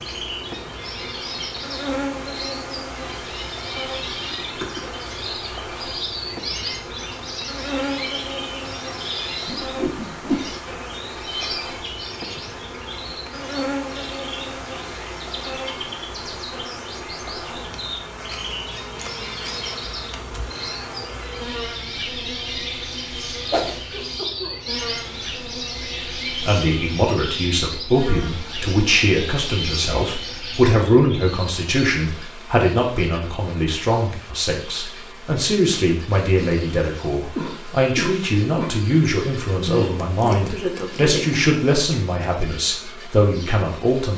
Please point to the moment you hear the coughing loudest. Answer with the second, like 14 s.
38 s.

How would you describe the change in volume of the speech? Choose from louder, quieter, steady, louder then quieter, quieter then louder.
steady.